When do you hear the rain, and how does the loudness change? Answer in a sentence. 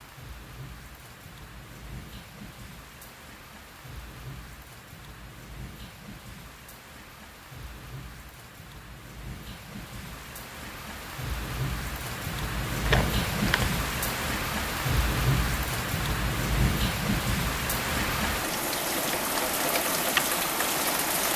The rain can be heard from 0.0 to 21.3 s, getting louder.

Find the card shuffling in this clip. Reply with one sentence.
You can hear the card shuffling from 12.8 to 13.8 s.